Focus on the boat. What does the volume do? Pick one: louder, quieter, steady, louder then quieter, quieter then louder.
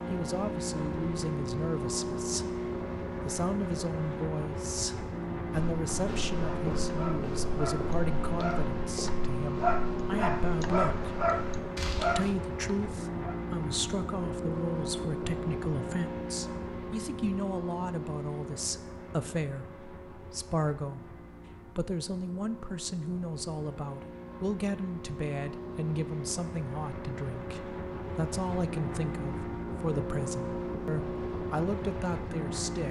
quieter then louder.